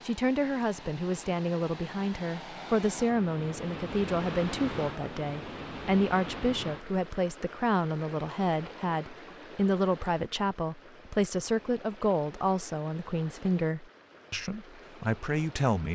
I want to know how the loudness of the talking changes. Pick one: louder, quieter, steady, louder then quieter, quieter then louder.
steady.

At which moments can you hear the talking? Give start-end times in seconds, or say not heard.
0.1-15.9.